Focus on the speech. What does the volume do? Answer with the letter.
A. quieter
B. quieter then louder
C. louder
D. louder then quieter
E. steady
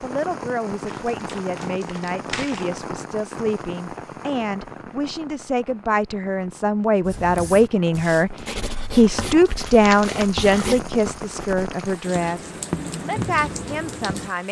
D.